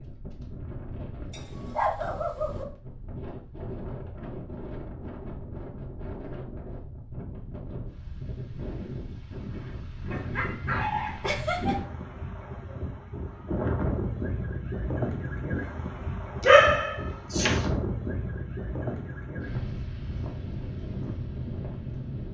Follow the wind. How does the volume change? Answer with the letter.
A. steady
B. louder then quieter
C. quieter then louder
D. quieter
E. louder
E.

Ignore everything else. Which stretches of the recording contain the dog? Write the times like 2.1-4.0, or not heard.
1.3-2.6, 10.1-11.8, 16.4-17.6.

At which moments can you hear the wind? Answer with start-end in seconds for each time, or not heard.
0.0-22.2.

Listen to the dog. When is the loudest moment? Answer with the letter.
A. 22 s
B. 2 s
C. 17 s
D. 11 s
C.